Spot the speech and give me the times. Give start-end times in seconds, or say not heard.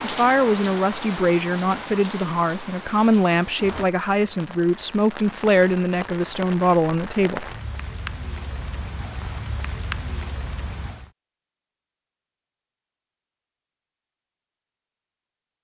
0.0-7.5.